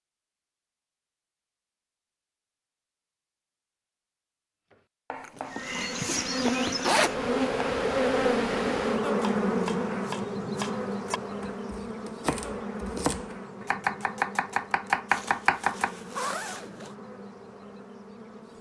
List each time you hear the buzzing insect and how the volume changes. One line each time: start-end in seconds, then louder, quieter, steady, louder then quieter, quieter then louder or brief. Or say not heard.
5.5-18.5 quieter.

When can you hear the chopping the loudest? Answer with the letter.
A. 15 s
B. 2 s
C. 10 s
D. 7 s
A.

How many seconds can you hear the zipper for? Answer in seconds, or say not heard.
4 s.